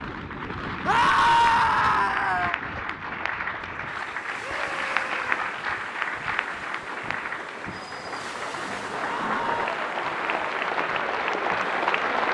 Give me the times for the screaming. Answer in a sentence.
The screaming can be heard from 0.8 to 2.6 s, from 4.4 to 5.2 s and from 9.0 to 9.8 s.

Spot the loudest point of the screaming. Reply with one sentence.
The loudest moment of the screaming is at 1 second.